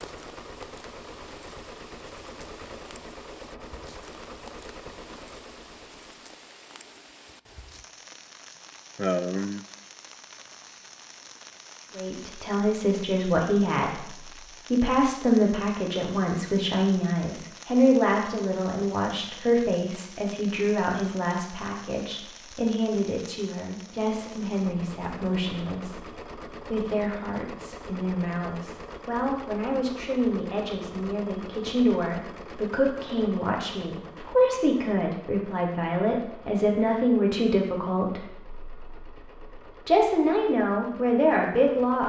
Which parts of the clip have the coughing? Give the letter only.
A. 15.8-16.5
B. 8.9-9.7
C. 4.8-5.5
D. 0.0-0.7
B.